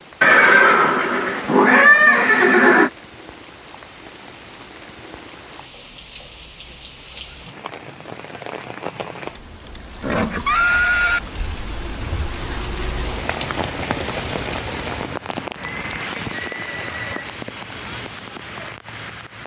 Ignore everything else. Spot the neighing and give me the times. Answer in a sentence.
The neighing can be heard from 0.2 to 2.9 s, from 9.2 to 11.2 s and from 15.8 to 17.4 s.